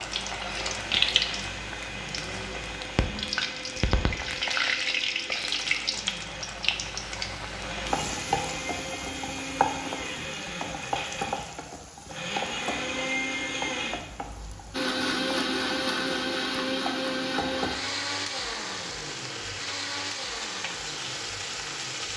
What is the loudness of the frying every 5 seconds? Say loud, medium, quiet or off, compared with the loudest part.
loud, loud, medium, medium, medium.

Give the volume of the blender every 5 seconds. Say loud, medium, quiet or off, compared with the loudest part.
medium, medium, loud, loud, medium.